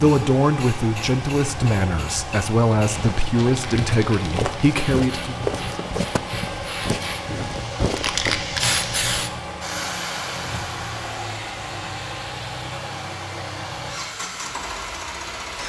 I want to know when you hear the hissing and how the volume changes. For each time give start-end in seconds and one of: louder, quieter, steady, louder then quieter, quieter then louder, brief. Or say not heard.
0.0-15.6 louder then quieter.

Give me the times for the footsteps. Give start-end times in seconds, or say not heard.
2.9-8.4.